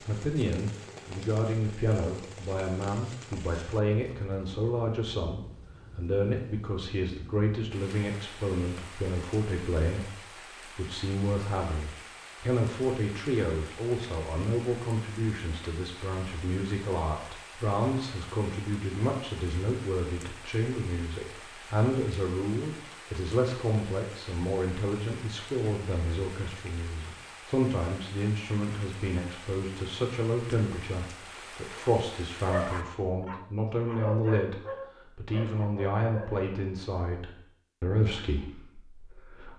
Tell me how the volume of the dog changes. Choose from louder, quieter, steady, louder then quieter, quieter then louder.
louder then quieter.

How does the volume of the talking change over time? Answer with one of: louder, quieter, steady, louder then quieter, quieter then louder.
steady.